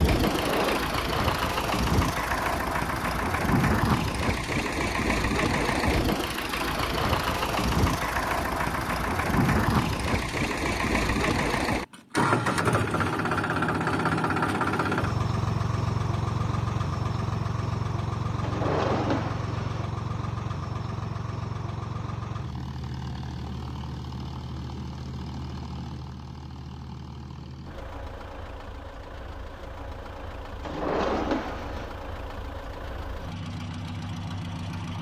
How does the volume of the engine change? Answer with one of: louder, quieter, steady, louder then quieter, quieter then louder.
quieter.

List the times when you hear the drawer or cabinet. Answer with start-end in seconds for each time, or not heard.
0.2-0.8, 18.4-19.9, 30.6-31.9.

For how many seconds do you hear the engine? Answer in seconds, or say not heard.
35 s.